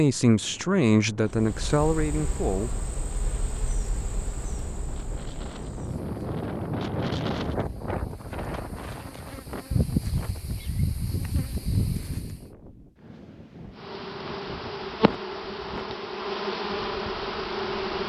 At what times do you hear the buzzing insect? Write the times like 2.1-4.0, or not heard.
1.2-12.4, 13.8-18.0.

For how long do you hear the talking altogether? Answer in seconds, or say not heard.
3 s.